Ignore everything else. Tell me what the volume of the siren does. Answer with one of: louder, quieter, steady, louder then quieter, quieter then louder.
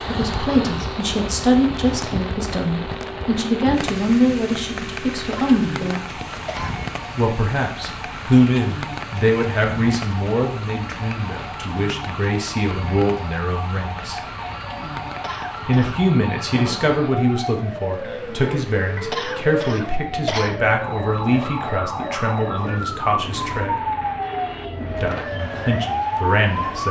louder.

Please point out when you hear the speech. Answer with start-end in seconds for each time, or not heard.
0.1-6.2, 7.2-14.2, 15.7-23.8, 25.0-26.8.